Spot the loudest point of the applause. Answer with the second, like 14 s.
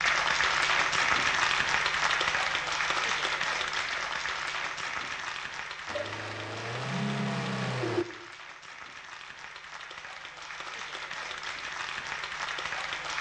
1 s.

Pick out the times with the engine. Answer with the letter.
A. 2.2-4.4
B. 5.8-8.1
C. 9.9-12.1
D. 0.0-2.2
B.